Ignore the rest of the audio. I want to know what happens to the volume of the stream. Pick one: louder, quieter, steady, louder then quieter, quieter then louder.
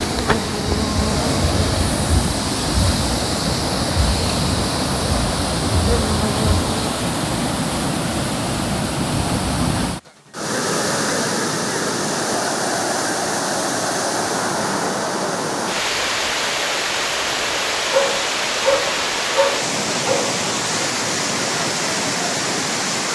steady.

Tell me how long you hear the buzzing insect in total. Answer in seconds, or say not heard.
7 s.